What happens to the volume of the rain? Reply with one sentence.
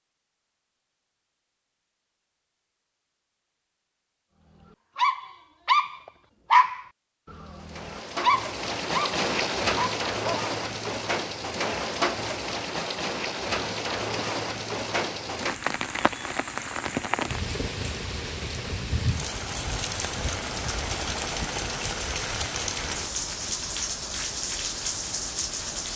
The volume of the rain stays about the same.